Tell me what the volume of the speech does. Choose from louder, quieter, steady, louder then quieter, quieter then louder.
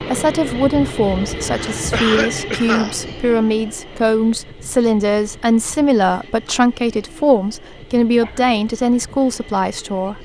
steady.